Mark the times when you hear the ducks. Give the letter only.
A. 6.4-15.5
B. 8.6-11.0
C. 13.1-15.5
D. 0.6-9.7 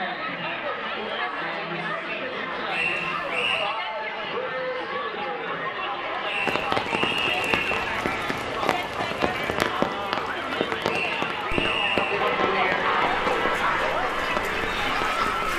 C.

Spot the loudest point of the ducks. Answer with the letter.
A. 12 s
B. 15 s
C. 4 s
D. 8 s
B.